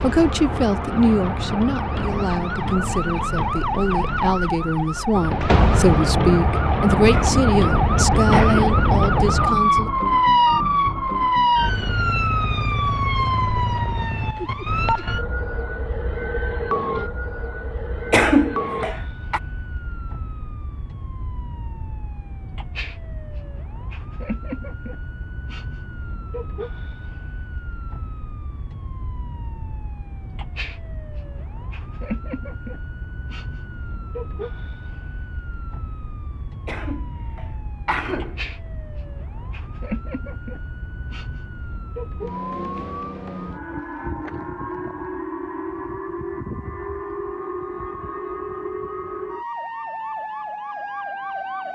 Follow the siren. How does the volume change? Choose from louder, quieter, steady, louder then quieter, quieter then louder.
quieter then louder.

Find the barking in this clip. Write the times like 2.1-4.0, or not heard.
not heard.